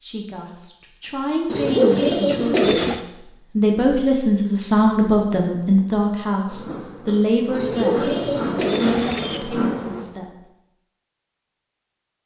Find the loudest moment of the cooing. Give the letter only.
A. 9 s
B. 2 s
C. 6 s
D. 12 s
B.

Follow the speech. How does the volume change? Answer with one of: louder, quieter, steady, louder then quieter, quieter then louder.
louder then quieter.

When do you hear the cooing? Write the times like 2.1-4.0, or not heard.
1.4-3.0, 7.5-9.4.